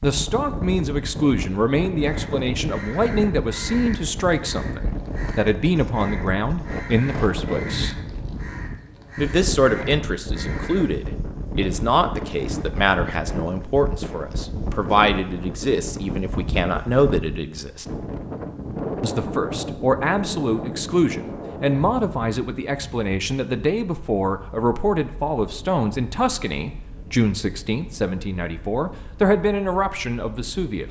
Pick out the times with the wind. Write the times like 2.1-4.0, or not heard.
0.0-30.8.